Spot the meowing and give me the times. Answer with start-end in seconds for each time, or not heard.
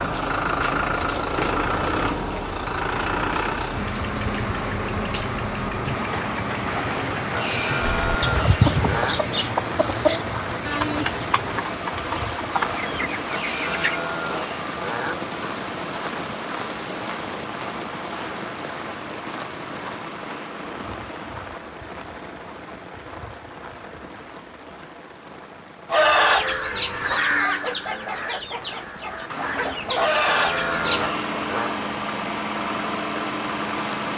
not heard.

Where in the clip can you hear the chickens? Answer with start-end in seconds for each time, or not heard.
8.0-14.0, 25.9-31.1.